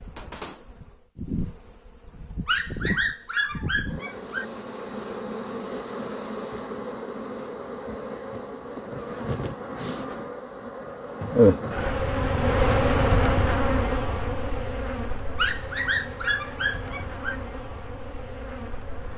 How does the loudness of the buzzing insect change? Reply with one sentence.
The loudness of the buzzing insect goes up, then down.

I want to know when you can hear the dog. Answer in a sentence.
The dog can be heard from 2.5 to 4.5 s and from 15.3 to 17.4 s.